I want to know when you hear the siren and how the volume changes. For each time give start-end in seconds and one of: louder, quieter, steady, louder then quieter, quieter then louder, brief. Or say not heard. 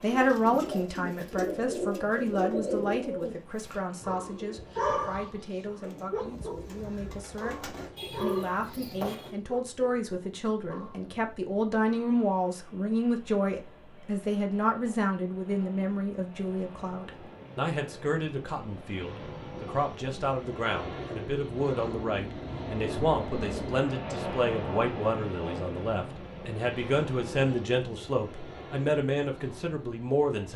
not heard.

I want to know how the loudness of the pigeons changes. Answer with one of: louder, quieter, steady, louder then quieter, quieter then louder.
quieter then louder.